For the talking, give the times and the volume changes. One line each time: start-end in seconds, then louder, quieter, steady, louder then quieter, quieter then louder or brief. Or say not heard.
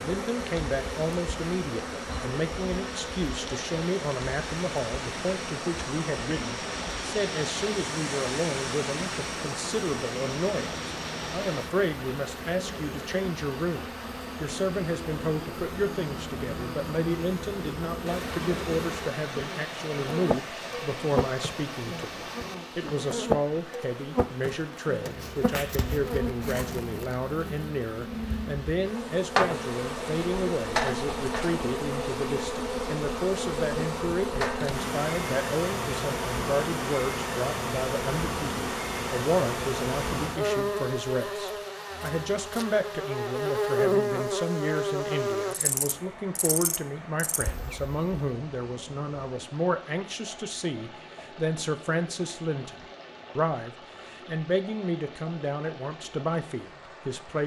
0.0-57.4 steady.